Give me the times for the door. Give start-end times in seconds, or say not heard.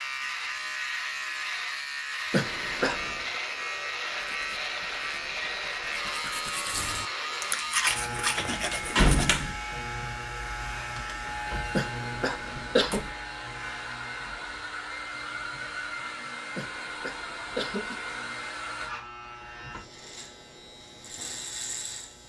8.3-9.6, 12.6-13.2.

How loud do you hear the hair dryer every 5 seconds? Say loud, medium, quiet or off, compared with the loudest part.
medium, medium, loud, loud, off.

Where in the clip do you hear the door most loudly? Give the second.
9 s.